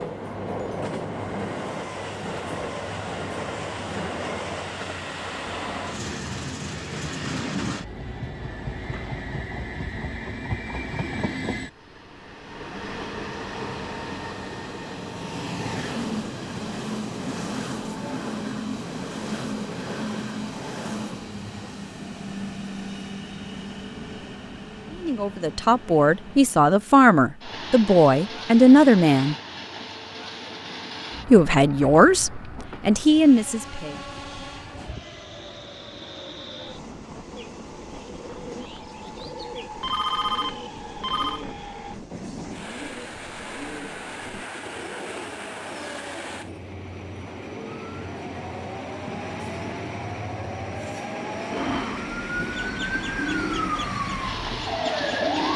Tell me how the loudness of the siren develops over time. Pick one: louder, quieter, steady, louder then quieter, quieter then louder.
louder.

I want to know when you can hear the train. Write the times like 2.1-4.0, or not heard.
0.0-55.5.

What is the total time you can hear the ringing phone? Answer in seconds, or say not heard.
2 s.